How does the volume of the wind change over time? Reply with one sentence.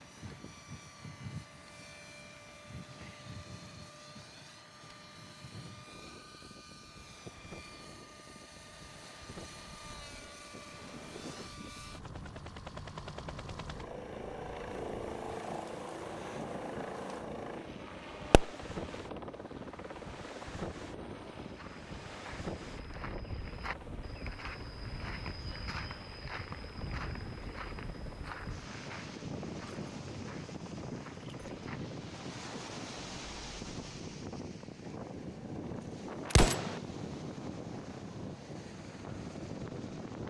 The loudness of the wind goes up.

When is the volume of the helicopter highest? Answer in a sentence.
The volume of the helicopter peaks at 15 seconds.